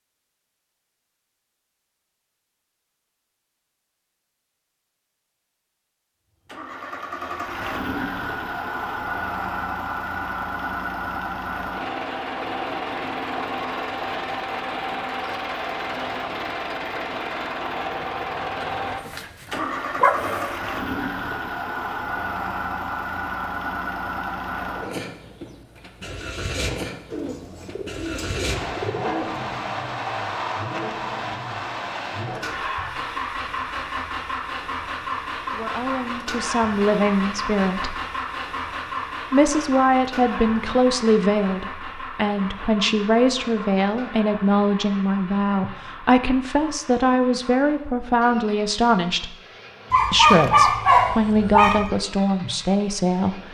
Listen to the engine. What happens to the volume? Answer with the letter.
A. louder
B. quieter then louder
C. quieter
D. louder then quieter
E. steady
C.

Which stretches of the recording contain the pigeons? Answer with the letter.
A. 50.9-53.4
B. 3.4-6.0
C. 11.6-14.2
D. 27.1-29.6
D.